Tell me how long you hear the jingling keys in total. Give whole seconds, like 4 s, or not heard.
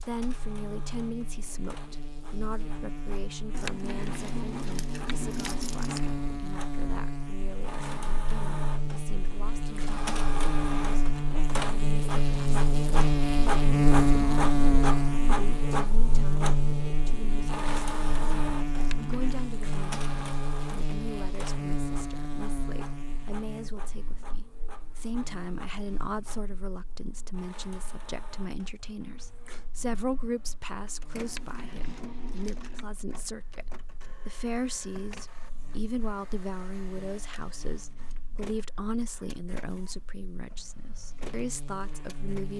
5 s.